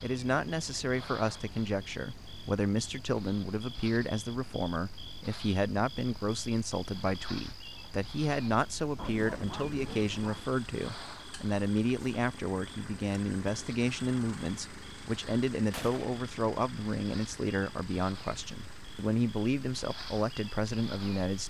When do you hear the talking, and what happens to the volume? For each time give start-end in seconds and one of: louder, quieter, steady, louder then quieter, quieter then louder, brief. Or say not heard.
0.0-21.4 steady.